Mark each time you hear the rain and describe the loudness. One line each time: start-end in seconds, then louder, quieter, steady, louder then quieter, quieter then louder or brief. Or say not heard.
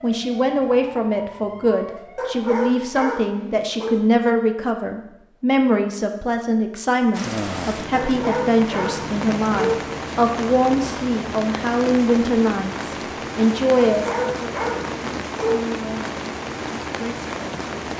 7.1-17.9 steady.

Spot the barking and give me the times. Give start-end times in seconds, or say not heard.
2.1-4.0, 7.9-9.9, 13.9-15.7.